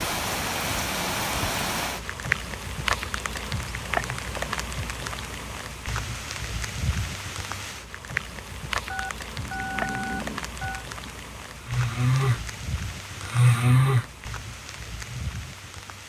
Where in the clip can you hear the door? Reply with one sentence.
The door can't be heard in this clip.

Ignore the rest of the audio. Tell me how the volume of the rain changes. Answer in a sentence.
The loudness of the rain goes down.